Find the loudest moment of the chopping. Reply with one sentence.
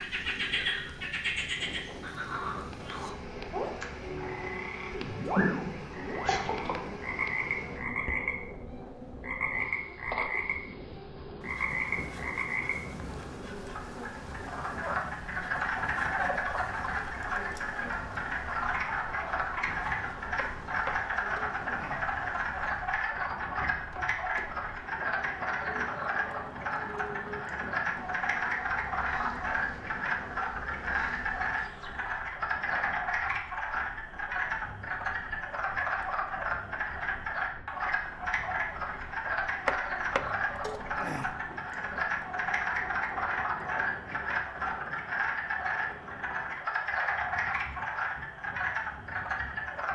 The volume of the chopping peaks at 40 seconds.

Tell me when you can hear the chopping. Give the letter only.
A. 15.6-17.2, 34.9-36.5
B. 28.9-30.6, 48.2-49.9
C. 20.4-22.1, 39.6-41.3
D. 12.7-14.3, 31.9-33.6
C.